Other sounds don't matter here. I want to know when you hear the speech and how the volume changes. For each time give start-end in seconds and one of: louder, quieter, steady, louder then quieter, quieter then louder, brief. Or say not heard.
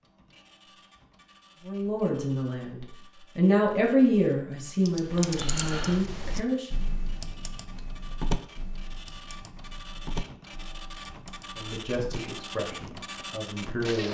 1.6-6.7 louder then quieter
11.6-14.0 brief.